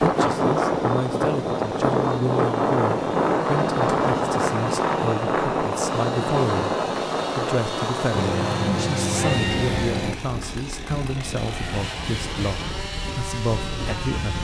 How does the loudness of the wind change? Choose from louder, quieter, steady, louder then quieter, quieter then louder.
quieter.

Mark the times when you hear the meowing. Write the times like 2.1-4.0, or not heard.
8.2-10.2.